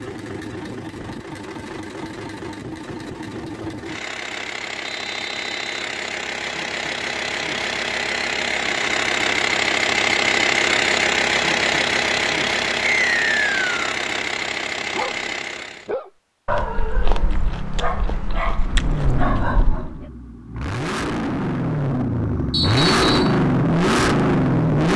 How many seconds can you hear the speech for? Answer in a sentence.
You can't hear the speech here.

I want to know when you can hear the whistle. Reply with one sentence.
You can hear the whistle from 4.8 to 5.7 s, from 12.8 to 13.8 s and from 22.5 to 23.4 s.